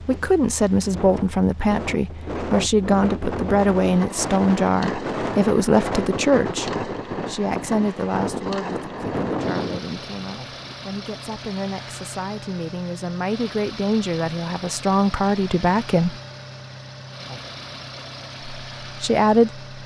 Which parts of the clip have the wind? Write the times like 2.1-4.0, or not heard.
0.0-10.8.